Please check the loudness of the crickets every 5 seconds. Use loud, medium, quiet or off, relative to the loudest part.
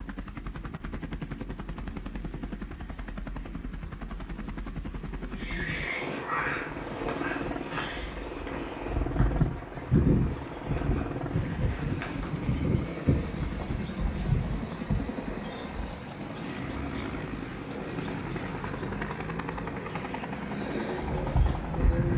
off, loud, loud, medium, loud.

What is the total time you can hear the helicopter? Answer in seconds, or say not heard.
22 s.